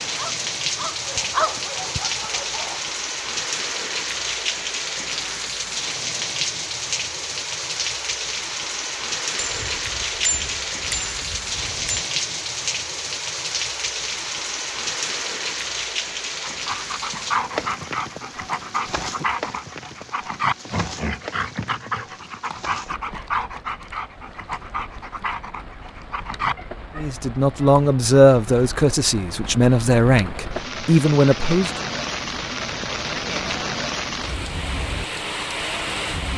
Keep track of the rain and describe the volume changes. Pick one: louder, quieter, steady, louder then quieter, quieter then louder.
quieter then louder.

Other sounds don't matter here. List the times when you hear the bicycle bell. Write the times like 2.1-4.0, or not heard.
9.3-12.1.